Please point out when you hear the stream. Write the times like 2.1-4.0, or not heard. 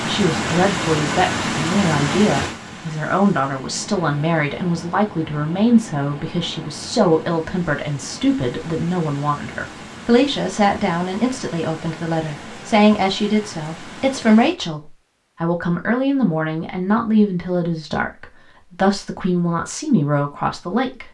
0.0-14.6.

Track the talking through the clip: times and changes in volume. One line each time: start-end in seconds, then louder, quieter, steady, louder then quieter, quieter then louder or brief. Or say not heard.
0.0-21.0 steady.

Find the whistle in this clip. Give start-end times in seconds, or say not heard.
not heard.